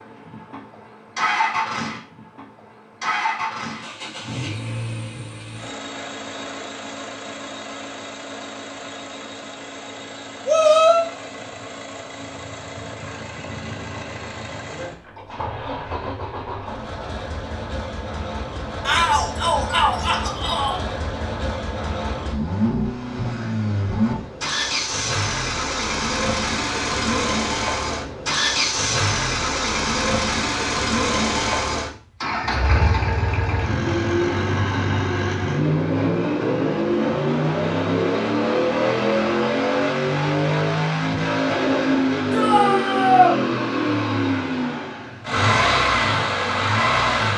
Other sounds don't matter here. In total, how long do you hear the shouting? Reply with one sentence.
The shouting can be heard for 4 seconds in total.